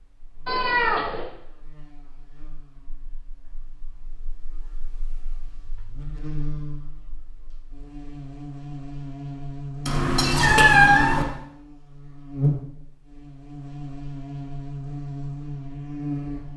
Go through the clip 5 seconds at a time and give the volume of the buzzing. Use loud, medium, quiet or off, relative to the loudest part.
quiet, medium, loud, loud.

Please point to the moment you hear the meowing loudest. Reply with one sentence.
The loudest moment of the meowing is at 11 seconds.